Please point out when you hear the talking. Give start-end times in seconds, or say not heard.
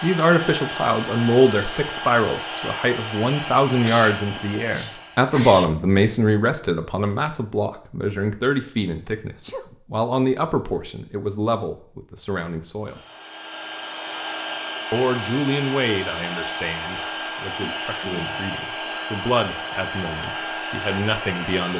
0.0-13.0, 14.9-21.7.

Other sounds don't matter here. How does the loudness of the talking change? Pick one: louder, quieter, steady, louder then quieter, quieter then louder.
quieter.